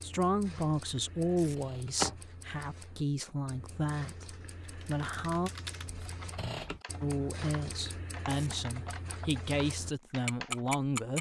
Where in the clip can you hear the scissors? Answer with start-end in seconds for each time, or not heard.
1.6-2.1, 5.8-6.8.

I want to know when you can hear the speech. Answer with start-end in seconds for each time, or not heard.
0.0-5.5, 7.0-11.1.